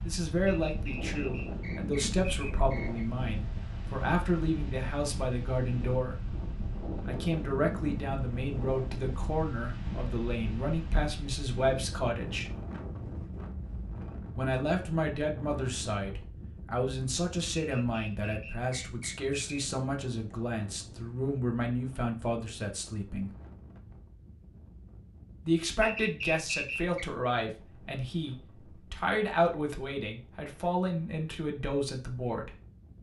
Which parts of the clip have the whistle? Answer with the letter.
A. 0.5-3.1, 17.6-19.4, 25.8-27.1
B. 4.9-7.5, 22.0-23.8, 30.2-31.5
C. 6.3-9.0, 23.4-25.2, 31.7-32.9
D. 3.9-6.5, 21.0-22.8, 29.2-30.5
A.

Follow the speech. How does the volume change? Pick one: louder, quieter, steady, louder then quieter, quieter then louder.
steady.